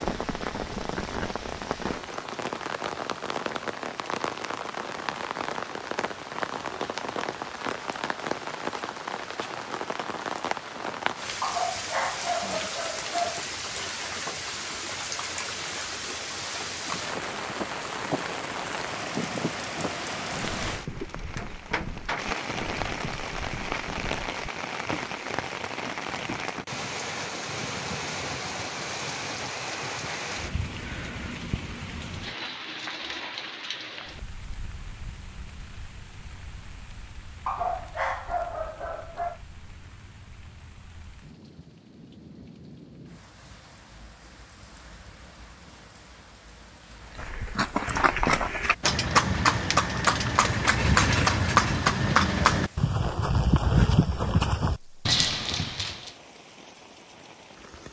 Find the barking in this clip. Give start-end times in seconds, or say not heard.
11.4-13.4, 37.5-39.4.